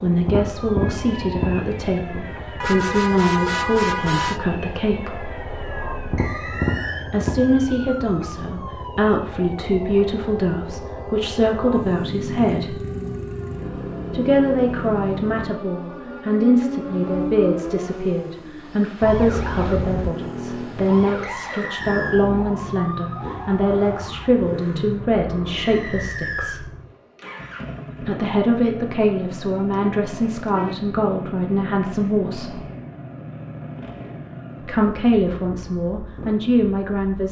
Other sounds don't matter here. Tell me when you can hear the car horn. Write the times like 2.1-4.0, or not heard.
2.6-4.4, 19.0-20.1, 29.7-30.8.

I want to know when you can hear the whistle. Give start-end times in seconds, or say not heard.
6.2-7.0, 21.2-22.2, 25.6-26.6.